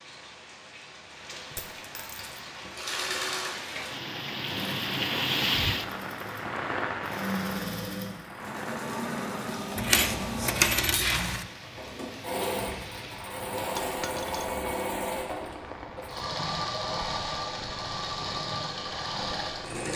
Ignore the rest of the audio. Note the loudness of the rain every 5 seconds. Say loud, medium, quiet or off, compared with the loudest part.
medium, loud, medium, medium.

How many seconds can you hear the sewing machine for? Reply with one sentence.
You can hear the sewing machine for 18 seconds altogether.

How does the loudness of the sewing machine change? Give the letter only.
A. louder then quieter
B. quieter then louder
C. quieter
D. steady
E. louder
D.